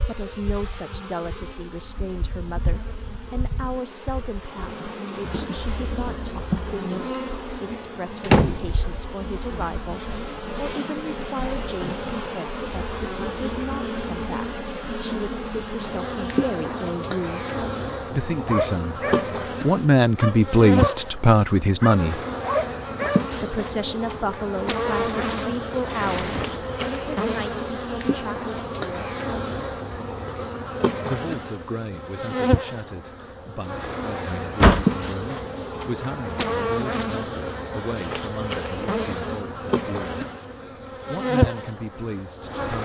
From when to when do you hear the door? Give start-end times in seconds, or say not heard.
8.2-8.6, 24.9-26.6, 34.4-34.9.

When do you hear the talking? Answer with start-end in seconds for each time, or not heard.
0.0-19.0, 19.6-22.2, 23.4-29.1, 31.1-40.2, 41.0-42.8.